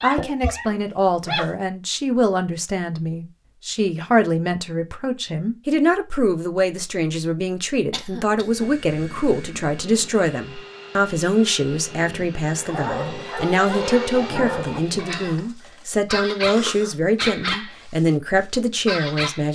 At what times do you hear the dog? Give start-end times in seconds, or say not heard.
0.0-1.5, 12.6-19.4.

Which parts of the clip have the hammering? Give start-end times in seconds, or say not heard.
not heard.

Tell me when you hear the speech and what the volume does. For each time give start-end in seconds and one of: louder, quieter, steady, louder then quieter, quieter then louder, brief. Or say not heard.
0.0-19.4 steady.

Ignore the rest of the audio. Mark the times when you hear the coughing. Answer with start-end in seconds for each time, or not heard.
0.1-0.6, 7.9-8.7, 16.4-16.9.